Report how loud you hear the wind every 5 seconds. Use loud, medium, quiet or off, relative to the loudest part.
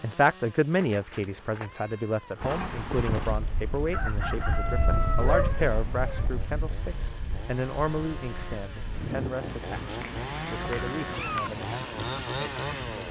loud, loud, medium.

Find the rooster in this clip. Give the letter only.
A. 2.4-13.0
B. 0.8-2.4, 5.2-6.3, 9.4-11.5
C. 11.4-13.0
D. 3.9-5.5
D.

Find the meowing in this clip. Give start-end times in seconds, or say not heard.
0.8-2.4, 5.2-6.3, 9.4-11.5.